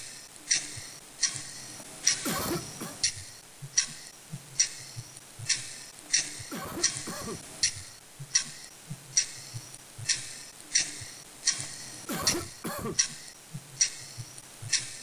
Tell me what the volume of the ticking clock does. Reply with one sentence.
The loudness of the ticking clock stays about the same.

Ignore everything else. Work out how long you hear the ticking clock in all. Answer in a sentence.
The ticking clock can be heard for 15 seconds in total.